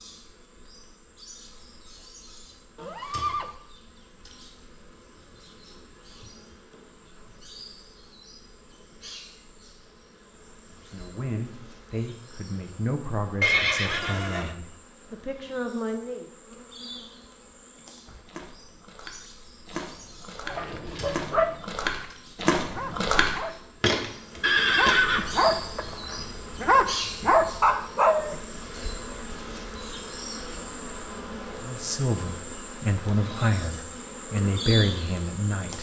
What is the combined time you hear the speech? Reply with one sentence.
The speech can be heard for 10 seconds in total.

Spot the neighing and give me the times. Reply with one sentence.
You can hear the neighing from 2.8 to 3.5 s, from 13.4 to 14.5 s and from 24.4 to 25.3 s.